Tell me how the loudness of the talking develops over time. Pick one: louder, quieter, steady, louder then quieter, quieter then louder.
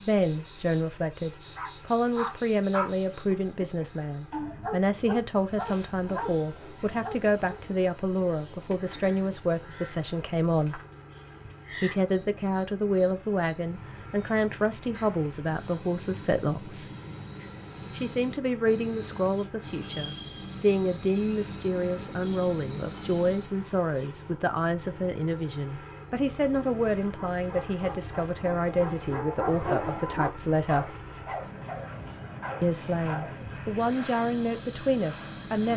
steady.